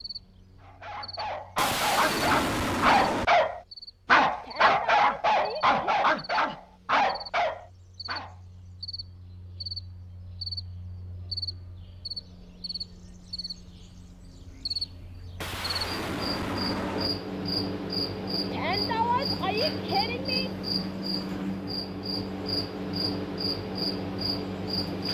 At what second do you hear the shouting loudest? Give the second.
19 s.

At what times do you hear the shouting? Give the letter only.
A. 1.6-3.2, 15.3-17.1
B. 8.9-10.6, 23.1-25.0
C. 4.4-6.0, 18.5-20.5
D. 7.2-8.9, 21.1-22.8
C.